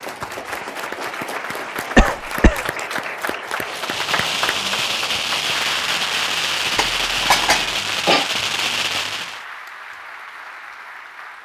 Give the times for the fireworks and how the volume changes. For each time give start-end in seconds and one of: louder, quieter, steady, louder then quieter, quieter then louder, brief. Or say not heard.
3.6-9.4 steady.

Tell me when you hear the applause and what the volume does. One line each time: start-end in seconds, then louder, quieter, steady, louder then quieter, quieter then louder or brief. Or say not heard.
0.0-11.4 quieter.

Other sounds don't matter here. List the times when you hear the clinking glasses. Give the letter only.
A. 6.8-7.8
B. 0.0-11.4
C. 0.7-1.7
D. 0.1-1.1
A.